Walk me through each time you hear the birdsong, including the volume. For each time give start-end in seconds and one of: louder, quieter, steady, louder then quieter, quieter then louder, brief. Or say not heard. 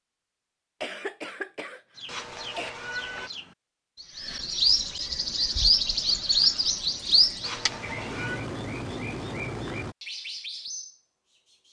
1.9-11.6 louder then quieter.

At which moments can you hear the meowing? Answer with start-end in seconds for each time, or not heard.
2.0-3.3, 7.4-8.4.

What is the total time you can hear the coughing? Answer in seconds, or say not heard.
2 s.